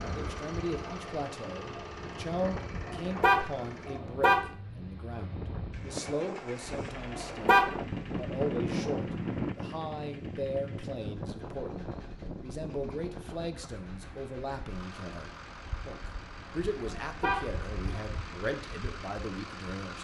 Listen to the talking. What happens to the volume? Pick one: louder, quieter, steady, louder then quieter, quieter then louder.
steady.